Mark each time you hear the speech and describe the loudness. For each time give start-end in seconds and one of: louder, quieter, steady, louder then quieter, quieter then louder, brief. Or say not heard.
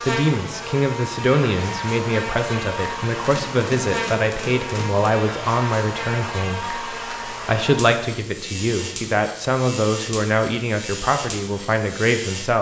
0.0-12.5 steady.